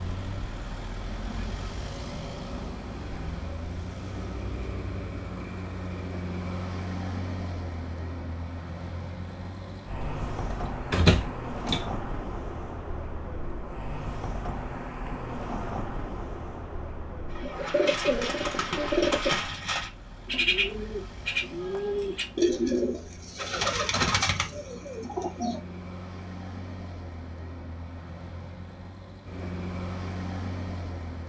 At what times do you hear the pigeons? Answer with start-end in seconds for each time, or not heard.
17.3-25.6.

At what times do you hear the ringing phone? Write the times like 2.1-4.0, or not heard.
not heard.